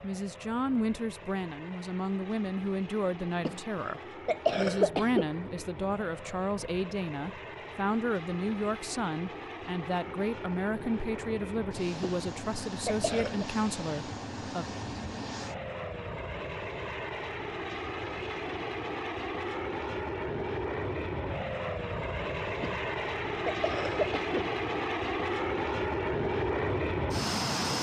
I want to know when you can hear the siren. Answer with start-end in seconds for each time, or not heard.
not heard.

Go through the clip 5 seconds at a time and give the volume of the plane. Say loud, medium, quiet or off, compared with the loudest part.
quiet, quiet, medium, medium, loud, loud.